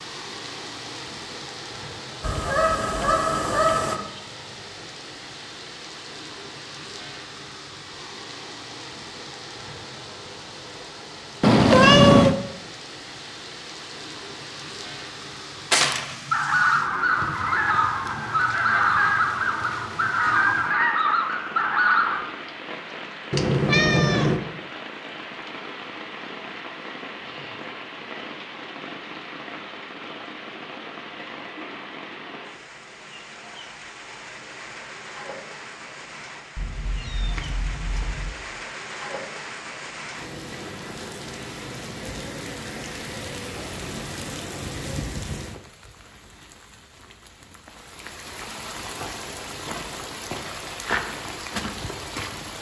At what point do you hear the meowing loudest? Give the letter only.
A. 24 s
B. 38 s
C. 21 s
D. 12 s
D.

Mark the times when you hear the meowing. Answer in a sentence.
The meowing can be heard from 11.4 to 12.3 s, from 23.3 to 24.4 s and from 36.5 to 38.3 s.